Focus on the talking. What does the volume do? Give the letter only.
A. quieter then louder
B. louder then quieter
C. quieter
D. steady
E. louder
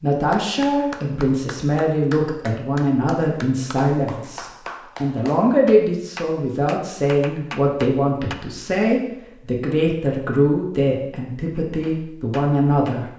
D.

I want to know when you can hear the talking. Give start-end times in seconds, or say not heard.
0.0-13.1.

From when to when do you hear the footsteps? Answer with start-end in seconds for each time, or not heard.
not heard.